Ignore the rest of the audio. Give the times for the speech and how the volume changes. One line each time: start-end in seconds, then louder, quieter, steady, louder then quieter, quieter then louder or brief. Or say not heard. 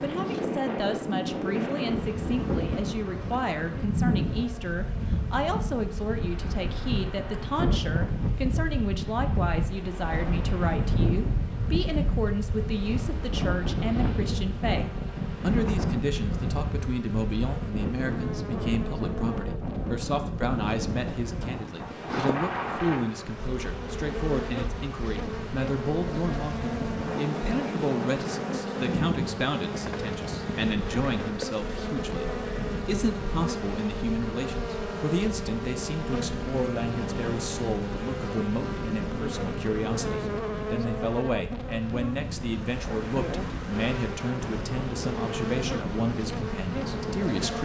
0.0-47.6 steady.